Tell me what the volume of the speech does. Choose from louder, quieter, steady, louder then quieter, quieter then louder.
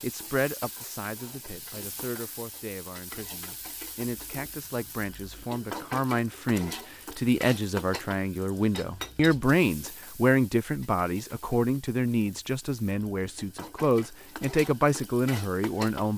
louder.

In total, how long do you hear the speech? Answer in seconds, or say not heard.
16 s.